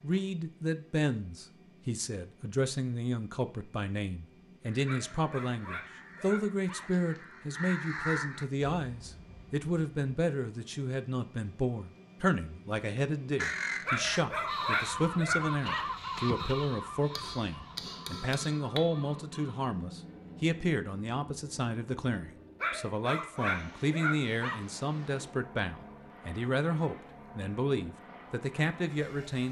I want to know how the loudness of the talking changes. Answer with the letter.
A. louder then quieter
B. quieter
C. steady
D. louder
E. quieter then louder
C.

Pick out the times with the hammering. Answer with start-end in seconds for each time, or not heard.
17.1-18.9.